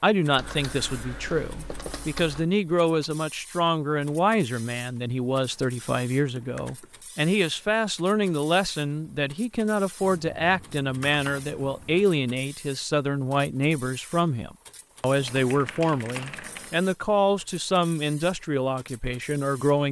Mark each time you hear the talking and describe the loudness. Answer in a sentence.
The talking can be heard from 0.0 to 19.8 s, at a steady volume.